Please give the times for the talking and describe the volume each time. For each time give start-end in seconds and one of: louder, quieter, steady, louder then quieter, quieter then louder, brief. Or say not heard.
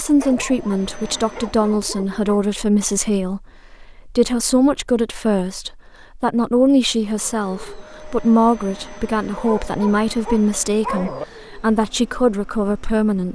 0.0-13.3 steady.